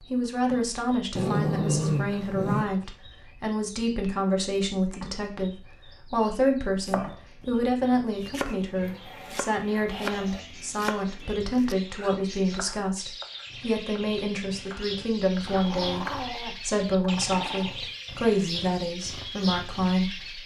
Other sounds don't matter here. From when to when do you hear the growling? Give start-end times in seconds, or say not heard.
1.1-2.6, 8.8-10.4, 15.4-17.8.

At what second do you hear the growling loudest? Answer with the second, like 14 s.
2 s.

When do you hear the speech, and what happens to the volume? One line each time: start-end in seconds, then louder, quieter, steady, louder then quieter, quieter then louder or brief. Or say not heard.
0.1-20.4 steady.